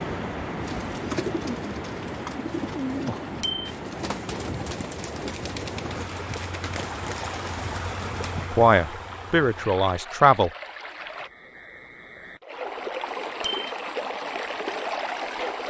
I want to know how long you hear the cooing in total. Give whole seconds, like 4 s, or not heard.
8 s.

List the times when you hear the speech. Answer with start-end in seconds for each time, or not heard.
8.5-10.5.